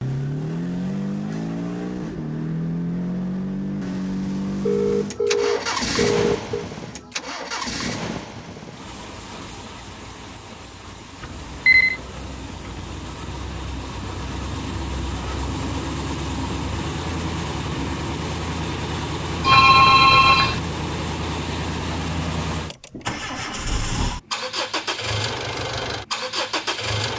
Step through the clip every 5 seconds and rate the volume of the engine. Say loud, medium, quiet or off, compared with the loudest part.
loud, loud, medium, loud, loud, loud.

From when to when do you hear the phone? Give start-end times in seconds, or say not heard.
4.6-6.7, 11.2-12.0, 19.4-20.6.